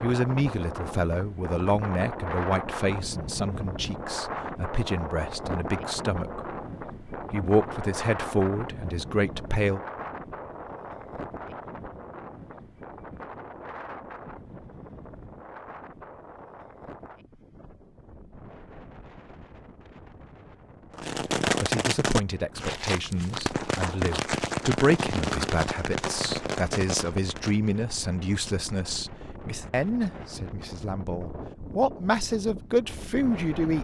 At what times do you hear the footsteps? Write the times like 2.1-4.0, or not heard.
not heard.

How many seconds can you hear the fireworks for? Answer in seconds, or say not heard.
7 s.